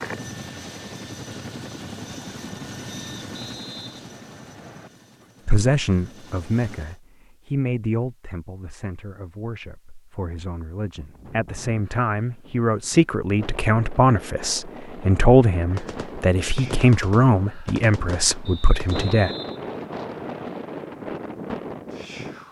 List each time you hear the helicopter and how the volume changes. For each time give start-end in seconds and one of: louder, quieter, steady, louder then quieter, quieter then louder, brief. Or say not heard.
0.0-7.0 quieter.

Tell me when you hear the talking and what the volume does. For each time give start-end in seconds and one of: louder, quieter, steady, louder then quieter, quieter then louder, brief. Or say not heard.
5.5-19.3 quieter then louder.